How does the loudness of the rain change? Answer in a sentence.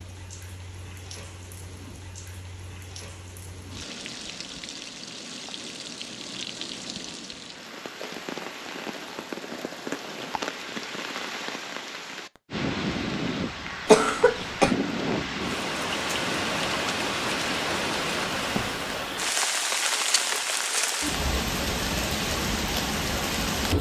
The volume of the rain goes up.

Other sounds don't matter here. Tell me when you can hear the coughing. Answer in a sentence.
You can hear the coughing from 13.8 to 14.7 s.